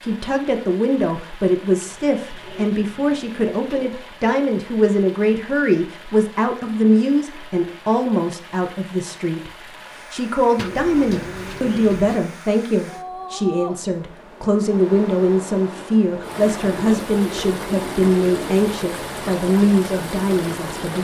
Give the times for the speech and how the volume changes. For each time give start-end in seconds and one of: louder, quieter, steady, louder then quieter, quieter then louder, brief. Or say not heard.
0.0-21.0 steady.